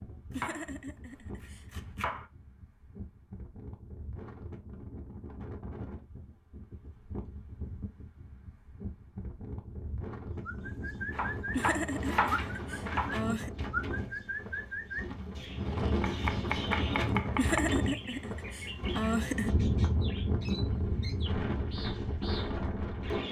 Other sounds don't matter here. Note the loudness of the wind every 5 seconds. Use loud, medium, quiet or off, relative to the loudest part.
quiet, quiet, medium, loud, loud.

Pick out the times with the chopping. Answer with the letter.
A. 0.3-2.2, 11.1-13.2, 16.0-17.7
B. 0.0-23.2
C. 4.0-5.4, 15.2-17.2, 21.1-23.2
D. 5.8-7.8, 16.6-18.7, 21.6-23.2
A.